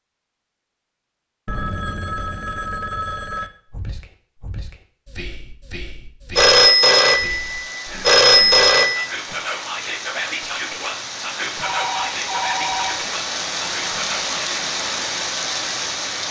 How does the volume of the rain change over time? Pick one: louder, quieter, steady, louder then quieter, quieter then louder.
louder.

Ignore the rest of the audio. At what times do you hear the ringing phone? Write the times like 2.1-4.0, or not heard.
1.4-3.5, 6.3-9.1, 11.6-13.1.